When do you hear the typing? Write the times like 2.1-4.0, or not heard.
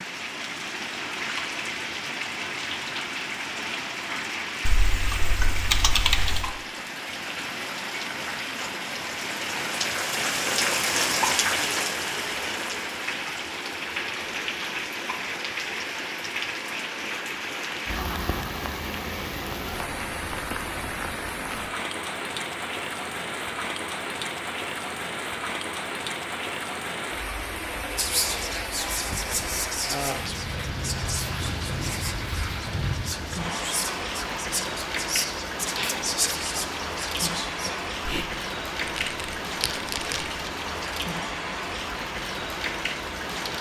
4.7-6.5, 38.9-40.3.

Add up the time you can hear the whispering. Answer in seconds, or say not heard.
10 s.